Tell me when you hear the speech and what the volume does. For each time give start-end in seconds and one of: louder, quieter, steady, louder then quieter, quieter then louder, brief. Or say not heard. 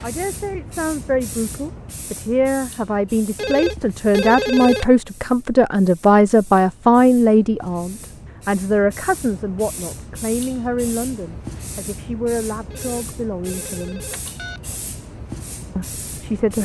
0.0-14.0 louder then quieter
15.8-16.6 brief.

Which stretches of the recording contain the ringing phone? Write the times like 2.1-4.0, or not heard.
3.4-4.8, 12.7-14.7.